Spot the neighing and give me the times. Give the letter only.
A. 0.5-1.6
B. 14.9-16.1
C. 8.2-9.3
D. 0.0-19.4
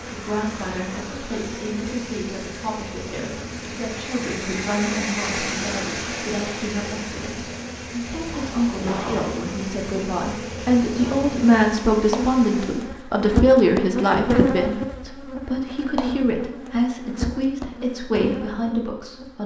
C.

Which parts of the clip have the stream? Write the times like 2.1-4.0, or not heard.
0.0-12.9.